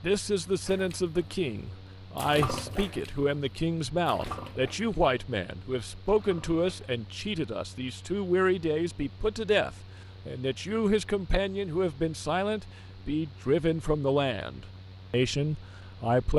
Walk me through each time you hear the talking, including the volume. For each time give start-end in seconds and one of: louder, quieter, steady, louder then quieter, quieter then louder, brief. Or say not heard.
0.0-16.3 steady.